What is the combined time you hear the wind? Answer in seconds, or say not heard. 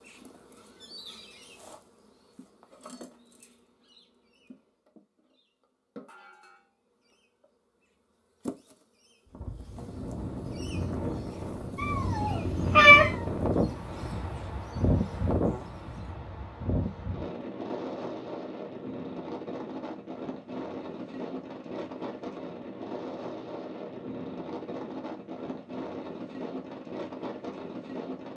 19 s.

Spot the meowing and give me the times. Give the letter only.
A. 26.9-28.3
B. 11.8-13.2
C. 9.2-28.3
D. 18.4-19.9
B.